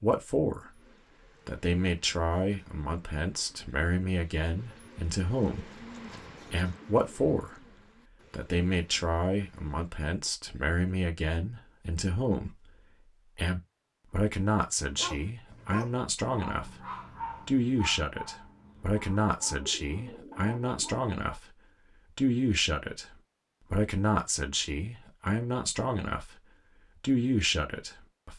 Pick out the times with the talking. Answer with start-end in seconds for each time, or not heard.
0.0-0.7, 1.4-5.8, 6.5-7.7, 8.3-28.3.